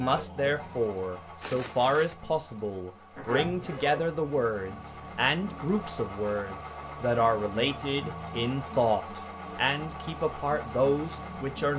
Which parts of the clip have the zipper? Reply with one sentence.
You can hear the zipper from 3.1 to 4.2 s.